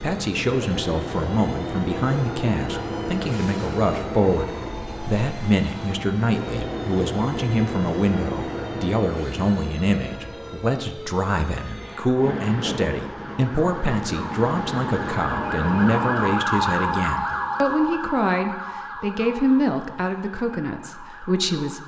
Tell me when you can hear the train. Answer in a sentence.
The train can be heard from 0.0 to 16.4 s.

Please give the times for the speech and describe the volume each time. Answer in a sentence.
You can hear the speech from 0.0 to 21.8 s, at a steady volume.